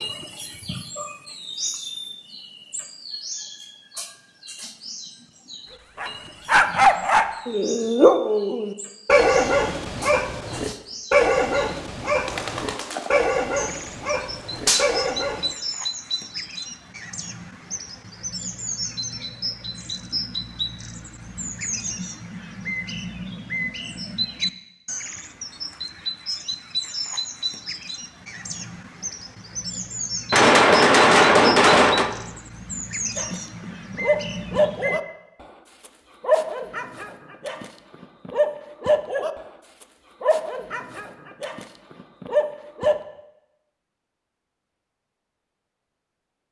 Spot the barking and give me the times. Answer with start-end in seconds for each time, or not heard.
6.0-15.6, 33.1-43.0.